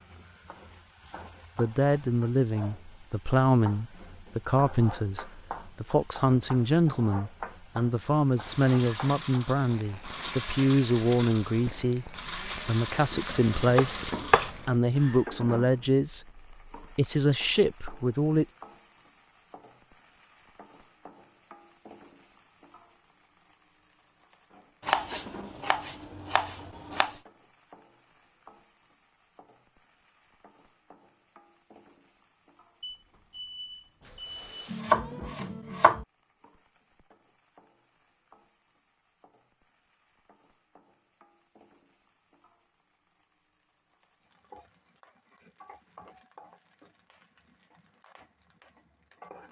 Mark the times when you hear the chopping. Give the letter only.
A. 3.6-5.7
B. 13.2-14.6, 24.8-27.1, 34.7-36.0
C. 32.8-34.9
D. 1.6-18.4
B.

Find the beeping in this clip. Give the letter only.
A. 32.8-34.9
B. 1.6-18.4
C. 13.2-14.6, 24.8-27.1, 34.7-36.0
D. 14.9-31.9
A.